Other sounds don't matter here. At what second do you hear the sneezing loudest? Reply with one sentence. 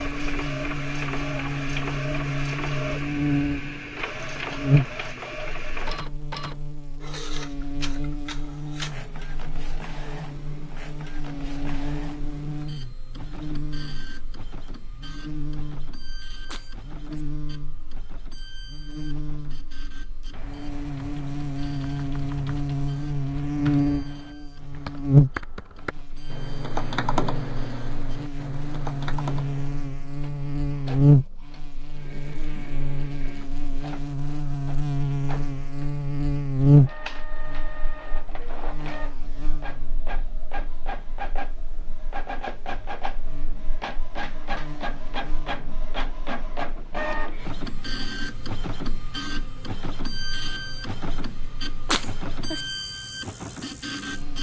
The volume of the sneezing peaks at 52 seconds.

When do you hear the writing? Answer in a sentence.
The writing can't be heard in this clip.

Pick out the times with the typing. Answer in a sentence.
You can hear the typing from 20.3 to 29.8 s.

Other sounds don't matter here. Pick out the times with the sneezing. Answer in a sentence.
You can hear the sneezing from 16.4 to 17.2 s and from 51.9 to 52.6 s.